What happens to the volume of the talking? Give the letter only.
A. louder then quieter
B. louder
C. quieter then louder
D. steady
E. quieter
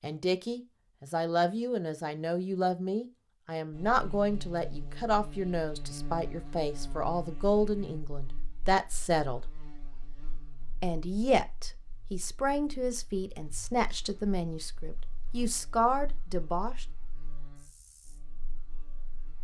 D.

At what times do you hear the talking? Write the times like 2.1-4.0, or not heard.
0.0-9.4, 10.8-16.9.